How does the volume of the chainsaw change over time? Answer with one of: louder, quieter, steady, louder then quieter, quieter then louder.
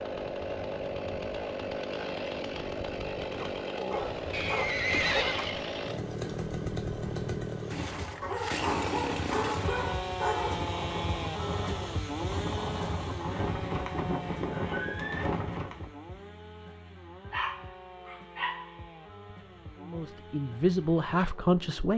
quieter.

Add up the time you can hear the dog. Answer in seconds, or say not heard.
6 s.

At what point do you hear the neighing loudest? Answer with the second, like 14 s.
5 s.